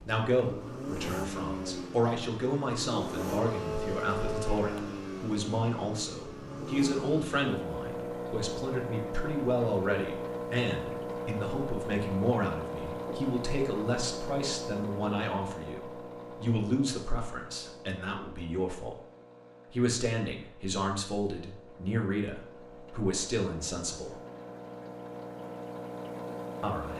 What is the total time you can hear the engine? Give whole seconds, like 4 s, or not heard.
27 s.